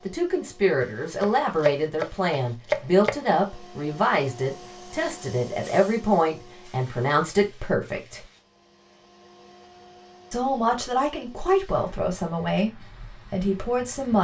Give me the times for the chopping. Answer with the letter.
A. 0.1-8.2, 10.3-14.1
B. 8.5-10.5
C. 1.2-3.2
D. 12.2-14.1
C.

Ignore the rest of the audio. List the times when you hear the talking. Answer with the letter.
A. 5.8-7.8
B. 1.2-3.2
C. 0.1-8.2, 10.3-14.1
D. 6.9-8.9
C.